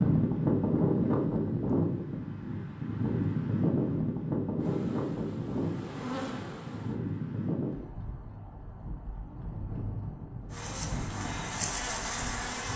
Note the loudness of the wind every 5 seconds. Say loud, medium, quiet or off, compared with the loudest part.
loud, medium, quiet.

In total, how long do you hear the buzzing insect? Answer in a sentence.
You can hear the buzzing insect for 5 seconds altogether.